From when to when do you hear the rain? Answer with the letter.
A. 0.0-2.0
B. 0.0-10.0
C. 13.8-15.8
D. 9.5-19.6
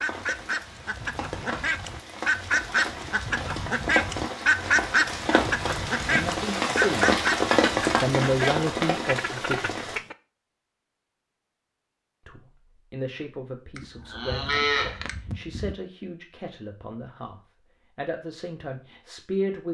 B.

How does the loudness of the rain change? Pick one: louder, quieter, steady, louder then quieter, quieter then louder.
louder.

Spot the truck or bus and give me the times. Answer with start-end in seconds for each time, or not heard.
not heard.